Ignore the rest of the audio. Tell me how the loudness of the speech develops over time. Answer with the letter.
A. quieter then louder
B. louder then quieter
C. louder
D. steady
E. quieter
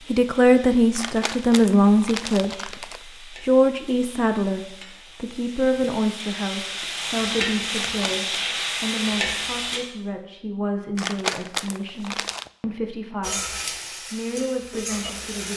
E.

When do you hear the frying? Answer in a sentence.
You can hear the frying from 0.0 to 9.8 s and from 13.2 to 15.5 s.